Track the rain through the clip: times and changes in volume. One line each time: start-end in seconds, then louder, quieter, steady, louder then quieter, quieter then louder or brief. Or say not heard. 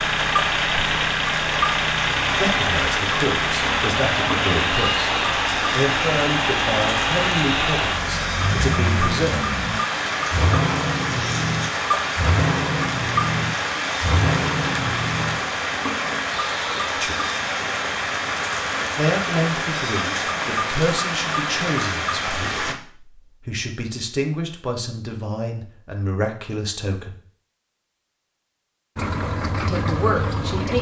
0.0-22.8 steady.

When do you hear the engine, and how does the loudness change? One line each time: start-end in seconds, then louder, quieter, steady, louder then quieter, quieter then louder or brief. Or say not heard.
0.0-15.4 steady
28.9-30.7 brief.